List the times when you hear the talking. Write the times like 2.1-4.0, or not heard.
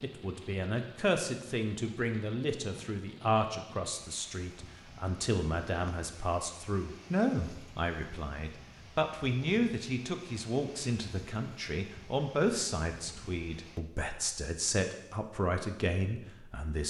0.0-16.8.